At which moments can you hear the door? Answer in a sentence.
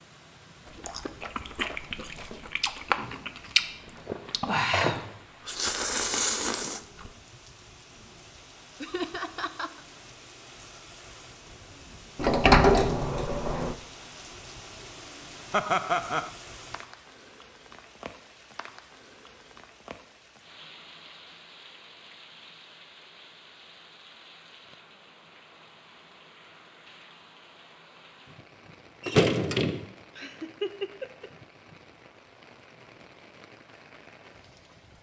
The door can be heard from 4.0 to 5.2 s, from 12.2 to 13.8 s and from 29.0 to 29.9 s.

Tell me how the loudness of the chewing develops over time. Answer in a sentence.
The volume of the chewing goes up.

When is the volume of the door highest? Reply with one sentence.
The volume of the door peaks at 13 seconds.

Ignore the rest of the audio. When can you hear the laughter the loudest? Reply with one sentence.
The loudest moment of the laughter is at 16 seconds.